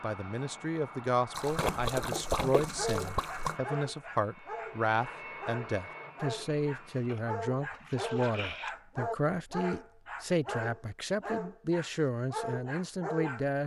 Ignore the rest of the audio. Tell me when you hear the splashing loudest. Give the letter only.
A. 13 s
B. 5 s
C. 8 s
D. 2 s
D.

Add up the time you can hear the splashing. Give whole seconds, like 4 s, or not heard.
4 s.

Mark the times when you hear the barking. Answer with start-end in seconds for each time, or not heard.
2.8-13.4.